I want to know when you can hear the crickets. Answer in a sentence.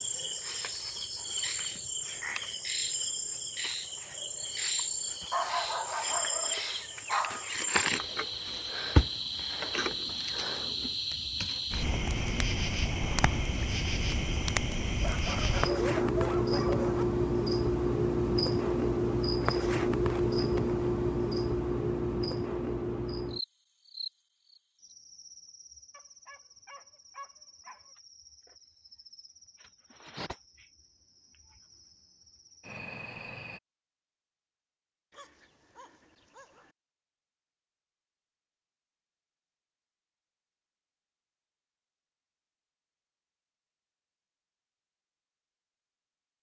You can hear the crickets from 0.0 to 33.6 s.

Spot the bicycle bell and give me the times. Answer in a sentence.
The bicycle bell can't be heard in this clip.